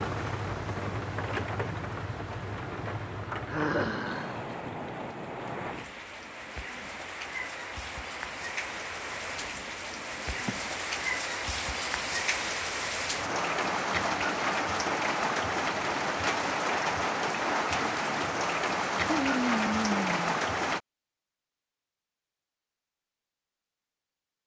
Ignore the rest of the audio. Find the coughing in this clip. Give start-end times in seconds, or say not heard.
not heard.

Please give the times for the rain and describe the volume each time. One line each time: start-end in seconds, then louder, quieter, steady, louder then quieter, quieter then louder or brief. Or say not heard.
0.0-20.8 louder.